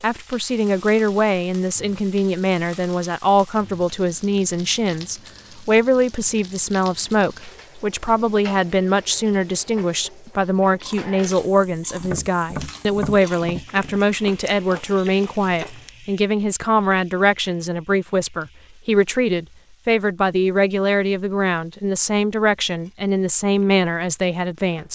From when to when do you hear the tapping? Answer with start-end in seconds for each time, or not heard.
12.0-14.0.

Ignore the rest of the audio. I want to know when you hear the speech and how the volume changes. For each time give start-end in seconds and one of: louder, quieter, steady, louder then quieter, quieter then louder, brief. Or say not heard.
0.0-24.9 steady.